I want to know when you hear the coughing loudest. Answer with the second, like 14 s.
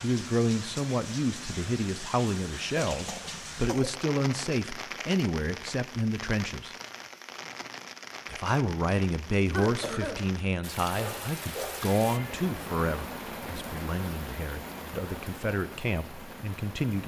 10 s.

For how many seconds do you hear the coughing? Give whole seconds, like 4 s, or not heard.
2 s.